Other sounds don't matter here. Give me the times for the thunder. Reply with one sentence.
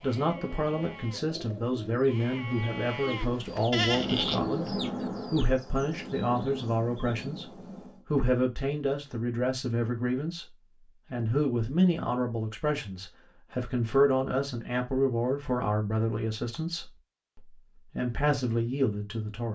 The thunder can be heard from 3.9 to 8.1 s.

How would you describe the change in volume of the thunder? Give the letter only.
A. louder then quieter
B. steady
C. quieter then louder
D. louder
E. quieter
E.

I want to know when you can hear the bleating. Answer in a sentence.
The bleating can be heard from 0.0 to 4.5 s.